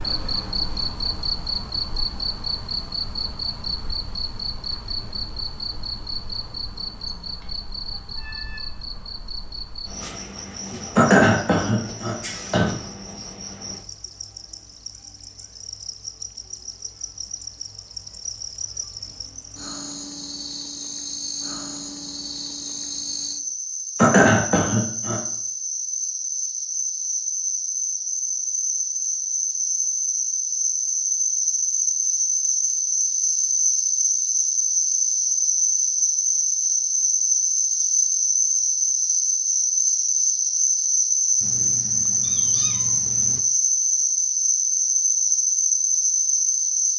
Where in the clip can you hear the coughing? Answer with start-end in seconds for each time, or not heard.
10.9-12.8, 23.9-25.2.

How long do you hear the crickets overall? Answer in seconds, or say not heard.
47 s.